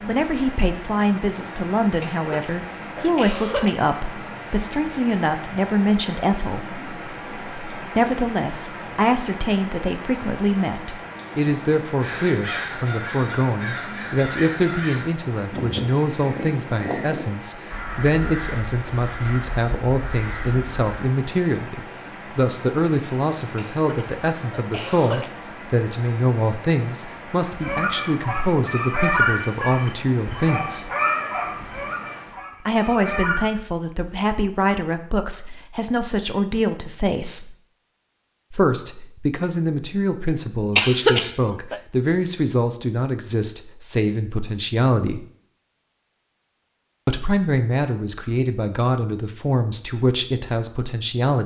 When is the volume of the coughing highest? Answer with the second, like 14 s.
41 s.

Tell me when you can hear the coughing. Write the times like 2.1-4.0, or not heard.
2.0-3.8, 23.7-25.3, 40.8-41.8.